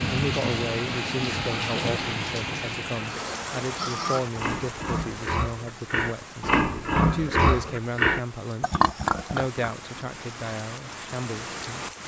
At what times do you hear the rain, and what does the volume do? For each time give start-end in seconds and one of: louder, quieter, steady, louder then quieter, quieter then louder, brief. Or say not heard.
0.0-12.0 quieter then louder.